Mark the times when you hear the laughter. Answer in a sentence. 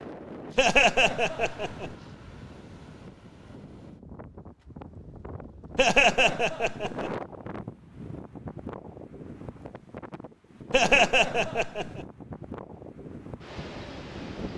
You can hear the laughter from 0.6 to 1.9 s, from 5.8 to 7.1 s and from 10.7 to 12.1 s.